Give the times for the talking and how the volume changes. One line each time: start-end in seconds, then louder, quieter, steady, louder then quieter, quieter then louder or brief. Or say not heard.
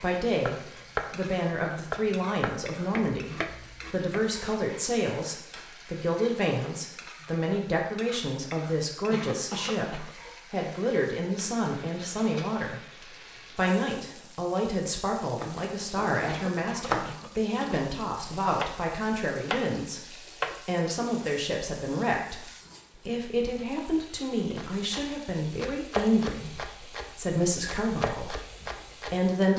0.0-12.8 steady
13.6-28.4 steady
29.1-29.5 brief.